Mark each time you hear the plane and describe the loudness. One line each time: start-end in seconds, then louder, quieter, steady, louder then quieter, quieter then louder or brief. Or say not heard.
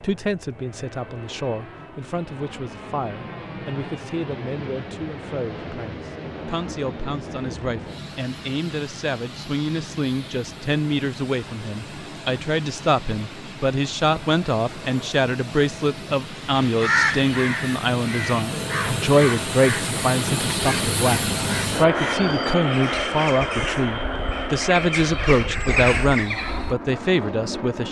0.0-27.8 louder.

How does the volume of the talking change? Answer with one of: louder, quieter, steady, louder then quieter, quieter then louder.
louder.